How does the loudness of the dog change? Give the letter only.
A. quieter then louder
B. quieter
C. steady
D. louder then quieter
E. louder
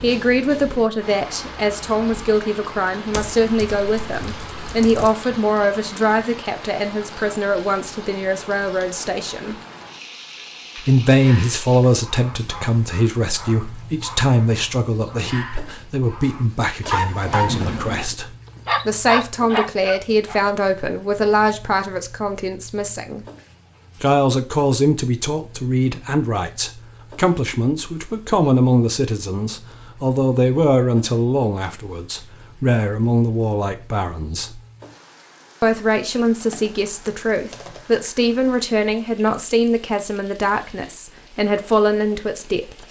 E.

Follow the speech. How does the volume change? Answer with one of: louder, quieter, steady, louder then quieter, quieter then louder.
steady.